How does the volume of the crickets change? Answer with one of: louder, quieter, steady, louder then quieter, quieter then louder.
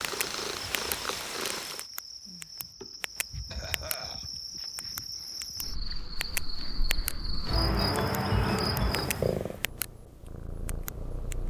louder.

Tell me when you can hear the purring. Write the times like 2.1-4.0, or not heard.
0.0-1.9, 8.8-11.4.